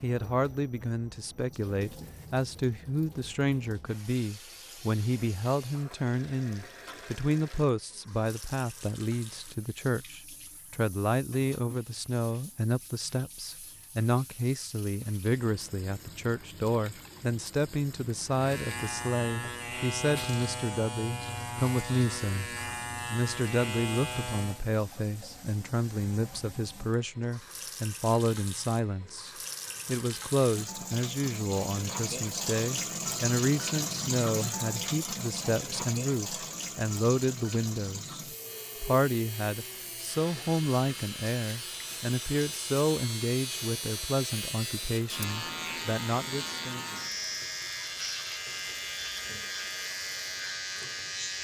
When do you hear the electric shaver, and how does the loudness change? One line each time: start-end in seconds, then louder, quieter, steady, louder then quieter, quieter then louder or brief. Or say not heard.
18.3-24.6 steady
38.2-51.3 louder.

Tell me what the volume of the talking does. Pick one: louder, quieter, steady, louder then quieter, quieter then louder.
steady.